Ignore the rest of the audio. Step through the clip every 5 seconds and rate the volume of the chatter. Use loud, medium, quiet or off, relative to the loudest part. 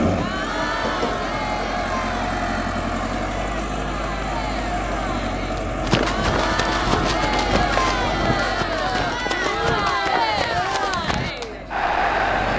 medium, loud, loud.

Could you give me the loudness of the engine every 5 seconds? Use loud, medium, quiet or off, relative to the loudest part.
loud, loud, medium.